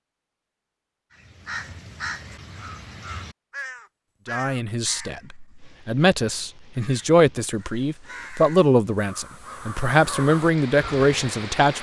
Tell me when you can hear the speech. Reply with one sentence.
You can hear the speech from 4.2 to 11.7 s.